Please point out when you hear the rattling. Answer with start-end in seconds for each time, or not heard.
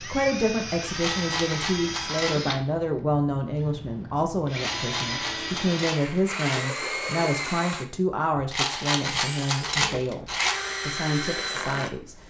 0.9-2.4, 4.5-6.6, 8.5-10.6.